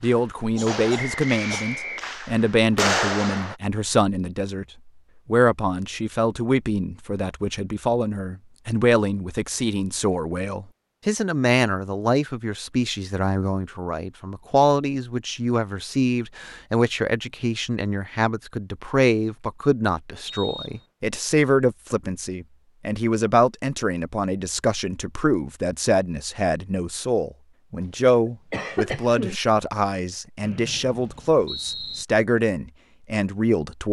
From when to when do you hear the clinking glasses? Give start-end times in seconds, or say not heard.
not heard.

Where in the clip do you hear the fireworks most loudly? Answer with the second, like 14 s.
3 s.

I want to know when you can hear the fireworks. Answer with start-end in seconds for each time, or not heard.
0.0-3.5.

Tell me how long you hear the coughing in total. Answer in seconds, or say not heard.
3 s.